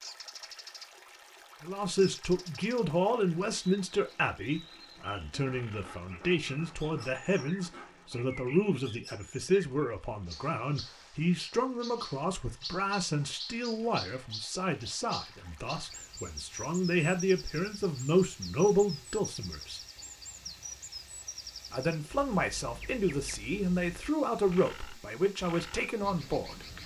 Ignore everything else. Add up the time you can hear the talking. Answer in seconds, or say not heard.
23 s.